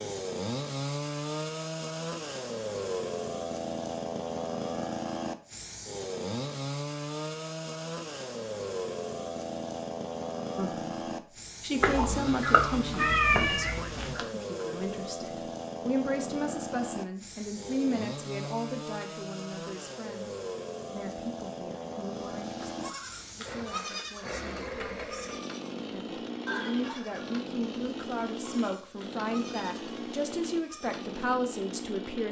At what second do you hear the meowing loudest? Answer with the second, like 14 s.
13 s.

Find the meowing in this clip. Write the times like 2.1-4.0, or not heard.
11.8-14.2.